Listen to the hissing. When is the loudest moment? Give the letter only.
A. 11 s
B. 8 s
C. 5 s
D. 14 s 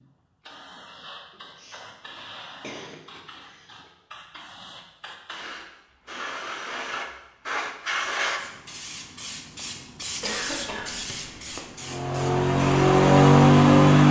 B.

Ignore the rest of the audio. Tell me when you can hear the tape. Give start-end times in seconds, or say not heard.
not heard.